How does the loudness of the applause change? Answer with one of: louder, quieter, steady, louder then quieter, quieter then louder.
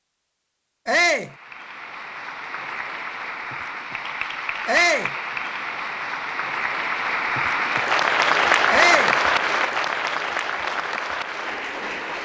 louder then quieter.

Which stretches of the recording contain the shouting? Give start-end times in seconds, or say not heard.
0.8-1.3, 4.7-5.1, 8.7-9.2.